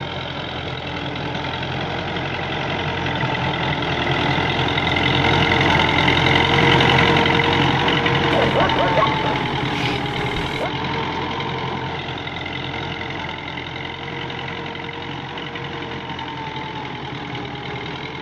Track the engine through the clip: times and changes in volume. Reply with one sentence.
You can hear the engine from 0.0 to 18.1 s, getting louder then quieter.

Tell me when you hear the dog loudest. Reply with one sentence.
The loudest moment of the dog is at 9 seconds.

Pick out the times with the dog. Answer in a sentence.
You can hear the dog from 8.3 to 10.7 s.